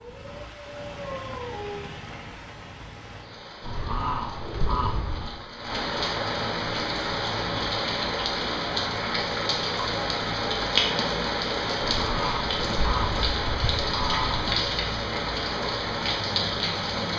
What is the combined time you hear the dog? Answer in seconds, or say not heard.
2 s.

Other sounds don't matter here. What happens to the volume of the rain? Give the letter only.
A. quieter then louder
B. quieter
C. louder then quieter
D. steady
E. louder
E.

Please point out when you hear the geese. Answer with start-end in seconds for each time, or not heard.
3.6-5.4, 11.8-14.6.